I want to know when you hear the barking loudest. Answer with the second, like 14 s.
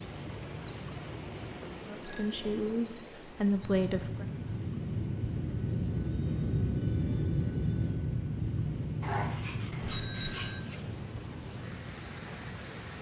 9 s.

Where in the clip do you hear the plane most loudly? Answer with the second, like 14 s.
7 s.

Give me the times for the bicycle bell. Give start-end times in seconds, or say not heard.
1.6-2.9, 9.8-10.6.